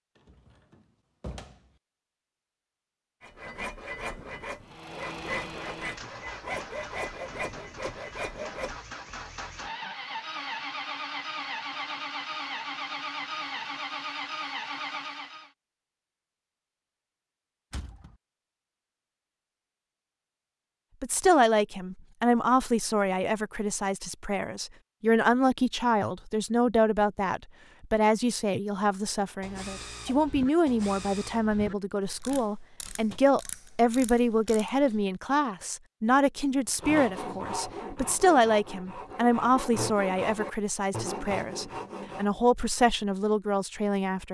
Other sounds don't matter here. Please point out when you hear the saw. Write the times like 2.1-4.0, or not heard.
3.2-8.8, 36.8-42.3.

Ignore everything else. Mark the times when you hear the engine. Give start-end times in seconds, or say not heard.
4.6-15.5.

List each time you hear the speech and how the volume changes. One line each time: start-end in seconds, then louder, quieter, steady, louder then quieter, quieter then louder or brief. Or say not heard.
21.0-44.2 steady.